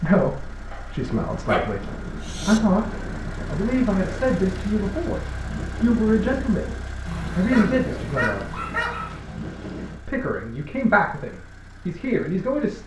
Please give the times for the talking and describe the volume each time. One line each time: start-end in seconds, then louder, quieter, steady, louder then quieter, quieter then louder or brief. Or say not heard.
0.0-6.8 louder
7.3-8.6 brief
10.1-12.8 brief.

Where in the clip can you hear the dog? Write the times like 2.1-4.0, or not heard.
0.7-2.6, 7.0-9.2.